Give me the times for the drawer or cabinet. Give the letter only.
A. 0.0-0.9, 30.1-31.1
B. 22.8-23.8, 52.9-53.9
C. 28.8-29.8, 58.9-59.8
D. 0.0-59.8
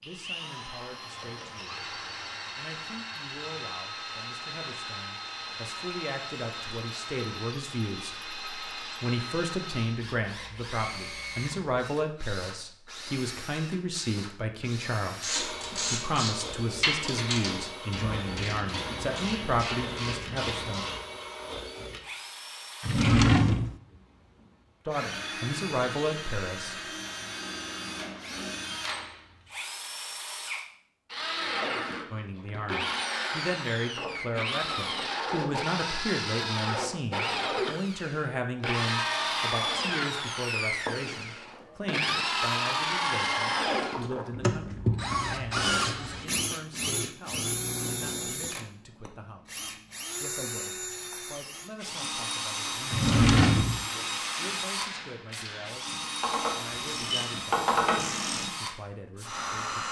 B.